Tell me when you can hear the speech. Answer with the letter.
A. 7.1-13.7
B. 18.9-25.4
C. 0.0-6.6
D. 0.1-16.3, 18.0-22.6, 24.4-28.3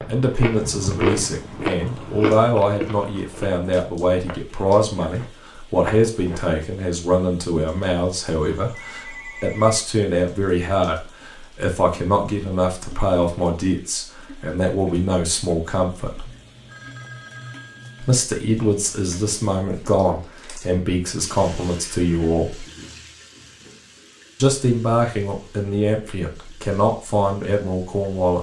D.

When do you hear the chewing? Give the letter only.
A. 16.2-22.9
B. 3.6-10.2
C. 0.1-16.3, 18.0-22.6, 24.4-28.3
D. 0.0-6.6
D.